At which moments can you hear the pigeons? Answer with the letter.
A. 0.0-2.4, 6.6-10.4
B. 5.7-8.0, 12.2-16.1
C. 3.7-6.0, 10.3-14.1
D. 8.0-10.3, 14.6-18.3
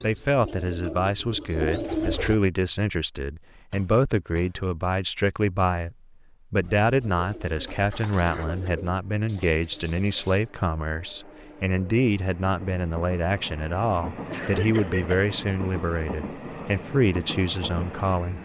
A.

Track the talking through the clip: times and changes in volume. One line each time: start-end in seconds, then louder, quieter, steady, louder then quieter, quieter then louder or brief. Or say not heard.
0.0-18.3 steady.